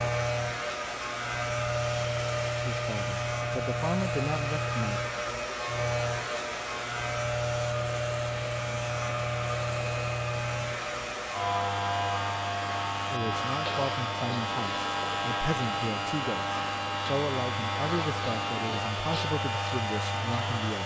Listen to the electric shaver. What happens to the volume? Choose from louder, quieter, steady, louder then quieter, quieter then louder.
steady.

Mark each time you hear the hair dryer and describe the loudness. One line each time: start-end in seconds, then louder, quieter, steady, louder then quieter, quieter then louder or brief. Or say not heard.
0.0-20.8 steady.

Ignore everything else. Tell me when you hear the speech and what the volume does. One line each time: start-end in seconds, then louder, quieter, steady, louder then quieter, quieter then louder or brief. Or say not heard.
2.6-5.0 brief
13.1-20.8 steady.